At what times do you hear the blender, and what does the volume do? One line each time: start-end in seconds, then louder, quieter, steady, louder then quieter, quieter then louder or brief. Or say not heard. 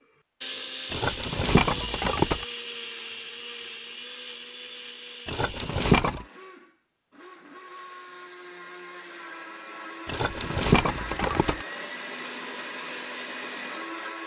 0.4-14.2 quieter then louder.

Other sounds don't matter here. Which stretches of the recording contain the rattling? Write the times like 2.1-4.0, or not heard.
0.9-2.5, 5.2-6.2, 10.1-11.7.